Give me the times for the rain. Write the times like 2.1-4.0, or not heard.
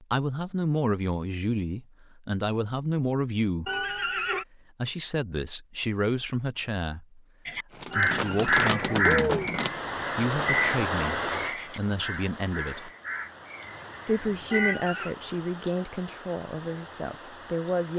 7.7-17.9.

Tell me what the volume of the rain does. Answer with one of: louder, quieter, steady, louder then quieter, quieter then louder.
quieter.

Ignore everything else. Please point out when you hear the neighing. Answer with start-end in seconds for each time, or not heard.
3.6-4.5, 7.9-9.5, 14.5-15.2.